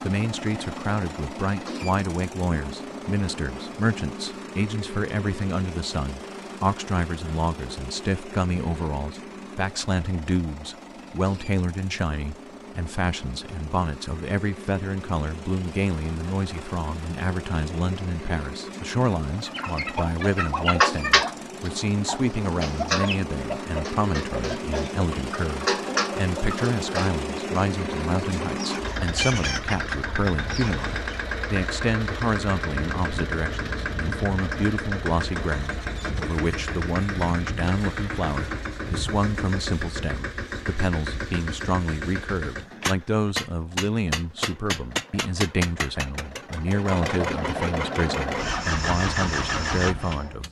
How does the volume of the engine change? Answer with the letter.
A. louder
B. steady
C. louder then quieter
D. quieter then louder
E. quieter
A.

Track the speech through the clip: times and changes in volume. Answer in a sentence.
The speech can be heard from 0.0 to 50.4 s, at a steady volume.